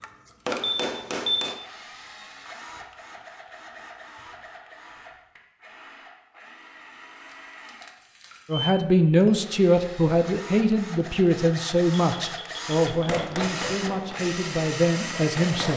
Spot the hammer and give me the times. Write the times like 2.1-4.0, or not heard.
0.0-1.6, 12.9-15.7.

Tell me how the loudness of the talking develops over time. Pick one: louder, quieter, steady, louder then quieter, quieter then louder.
quieter.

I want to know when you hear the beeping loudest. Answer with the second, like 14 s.
1 s.